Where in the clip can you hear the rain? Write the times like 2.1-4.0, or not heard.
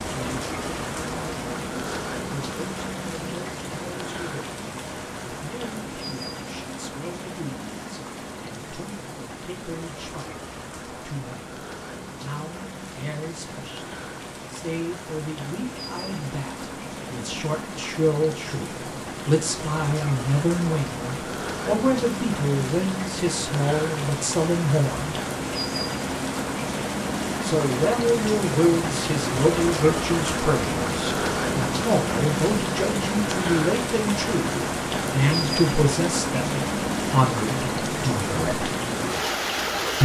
0.0-40.0.